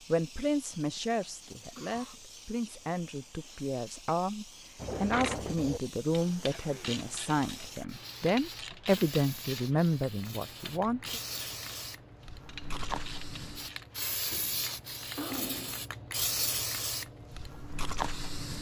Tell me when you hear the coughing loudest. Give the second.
15 s.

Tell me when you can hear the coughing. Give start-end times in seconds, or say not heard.
1.8-2.2, 6.5-7.0, 14.3-15.8.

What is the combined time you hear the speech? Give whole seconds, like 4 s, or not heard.
11 s.